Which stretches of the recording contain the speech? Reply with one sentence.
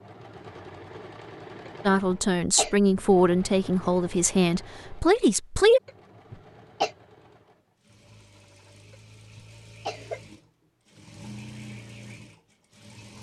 The speech can be heard from 1.9 to 5.8 s.